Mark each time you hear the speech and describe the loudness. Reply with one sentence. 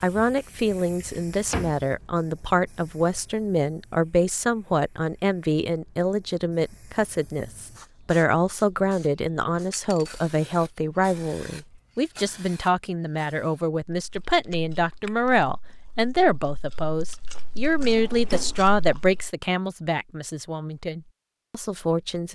The speech can be heard from 0.0 to 22.3 s, at a steady volume.